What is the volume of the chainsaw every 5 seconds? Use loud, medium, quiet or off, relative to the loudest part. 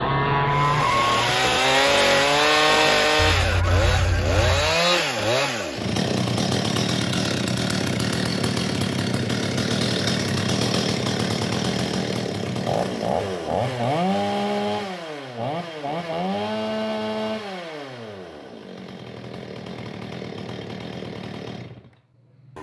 loud, loud, loud, medium, quiet.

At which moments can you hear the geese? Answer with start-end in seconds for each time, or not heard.
0.0-4.8.